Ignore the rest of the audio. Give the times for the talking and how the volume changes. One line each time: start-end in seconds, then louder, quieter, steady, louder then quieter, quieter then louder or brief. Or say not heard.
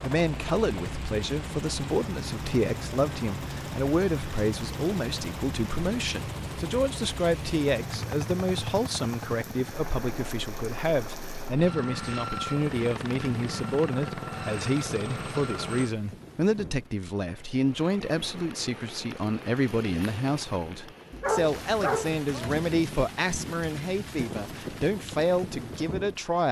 0.0-26.4 steady.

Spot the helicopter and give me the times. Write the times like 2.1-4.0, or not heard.
0.0-15.9.